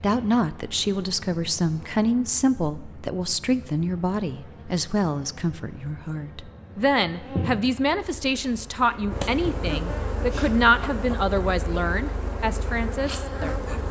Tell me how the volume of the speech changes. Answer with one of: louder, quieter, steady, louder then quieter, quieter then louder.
steady.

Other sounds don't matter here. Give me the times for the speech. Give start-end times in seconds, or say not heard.
0.0-13.6.